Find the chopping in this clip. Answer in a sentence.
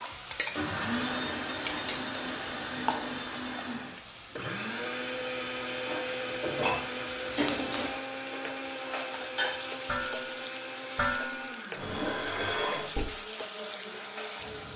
You can't hear the chopping here.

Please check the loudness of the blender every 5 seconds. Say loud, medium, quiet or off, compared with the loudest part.
loud, loud, medium.